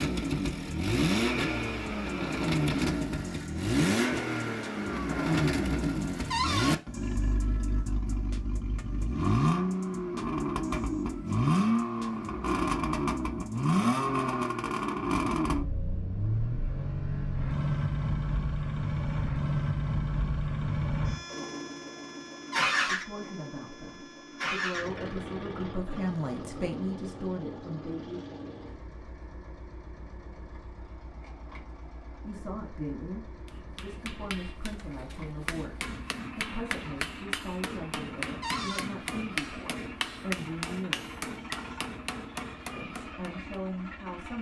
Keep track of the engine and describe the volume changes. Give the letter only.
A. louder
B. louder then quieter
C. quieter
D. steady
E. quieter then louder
C.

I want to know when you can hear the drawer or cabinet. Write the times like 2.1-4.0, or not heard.
6.3-6.8, 22.5-22.9, 38.4-38.9.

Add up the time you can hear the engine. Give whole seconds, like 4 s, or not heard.
44 s.